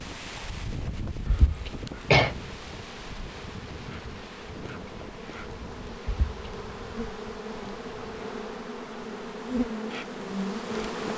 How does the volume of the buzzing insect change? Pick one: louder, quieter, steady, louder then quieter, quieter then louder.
louder.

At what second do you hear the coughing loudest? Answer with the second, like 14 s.
2 s.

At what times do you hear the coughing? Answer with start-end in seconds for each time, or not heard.
1.2-2.3, 6.0-6.5.